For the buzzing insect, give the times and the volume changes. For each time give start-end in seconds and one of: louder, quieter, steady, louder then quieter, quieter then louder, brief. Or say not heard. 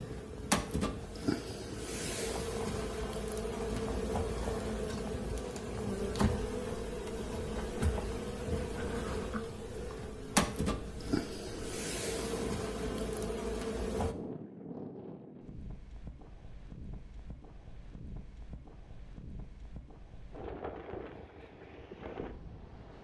0.0-14.2 steady.